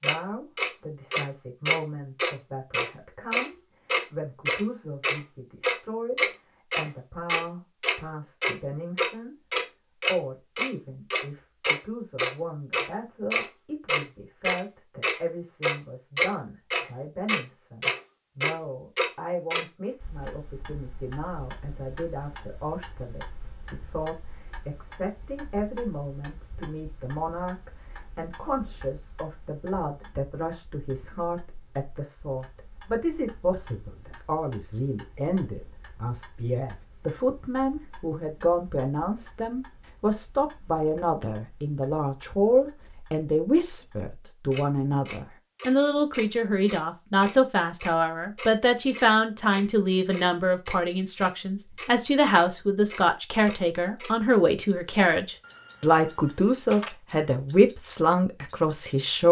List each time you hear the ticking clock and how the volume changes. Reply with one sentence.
The ticking clock can be heard from 0.0 to 59.2 s, getting quieter then louder.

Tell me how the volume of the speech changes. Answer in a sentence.
The loudness of the speech goes up.